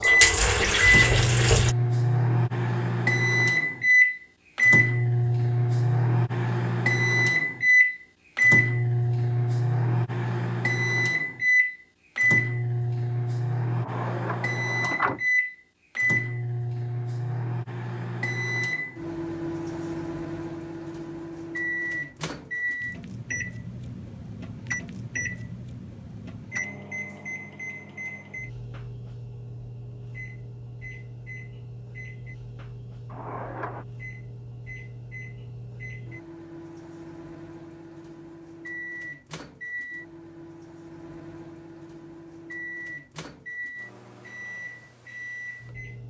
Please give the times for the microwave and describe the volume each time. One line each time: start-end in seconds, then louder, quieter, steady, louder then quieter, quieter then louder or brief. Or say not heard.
0.0-46.0 quieter.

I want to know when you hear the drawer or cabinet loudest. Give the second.
15 s.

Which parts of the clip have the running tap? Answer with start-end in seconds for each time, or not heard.
0.0-1.8.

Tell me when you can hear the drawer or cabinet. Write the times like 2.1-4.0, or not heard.
13.8-15.2, 33.0-33.9.